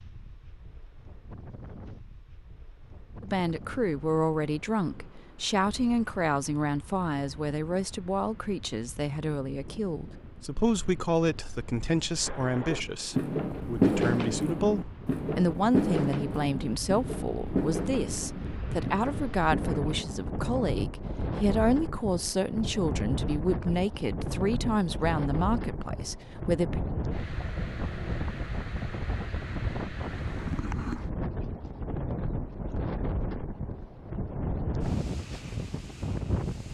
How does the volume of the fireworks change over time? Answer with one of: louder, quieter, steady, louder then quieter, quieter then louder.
quieter.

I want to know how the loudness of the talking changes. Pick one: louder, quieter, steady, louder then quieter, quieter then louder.
steady.